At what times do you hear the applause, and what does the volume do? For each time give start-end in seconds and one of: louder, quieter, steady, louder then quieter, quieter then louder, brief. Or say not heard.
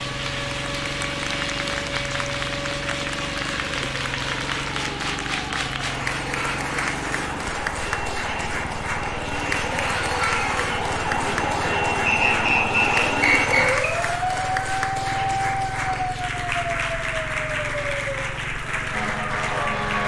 0.0-20.0 steady.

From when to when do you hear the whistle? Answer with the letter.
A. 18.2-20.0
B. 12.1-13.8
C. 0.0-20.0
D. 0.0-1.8
B.